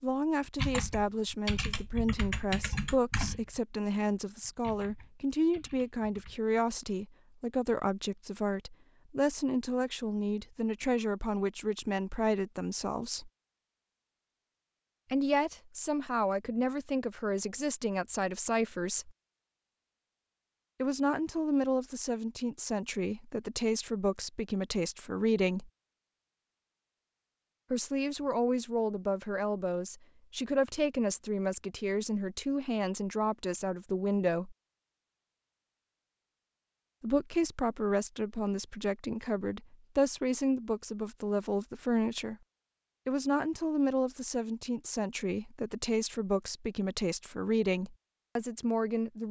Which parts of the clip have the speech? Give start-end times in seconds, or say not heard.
0.0-13.3, 15.1-19.1, 20.8-25.7, 27.7-34.5, 37.0-42.4, 43.0-49.2.